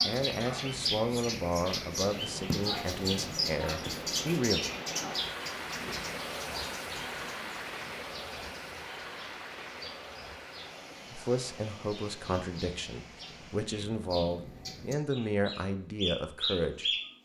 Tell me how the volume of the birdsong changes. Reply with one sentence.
The loudness of the birdsong goes down, then up.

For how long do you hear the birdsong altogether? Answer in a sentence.
The birdsong can be heard for 17 seconds in total.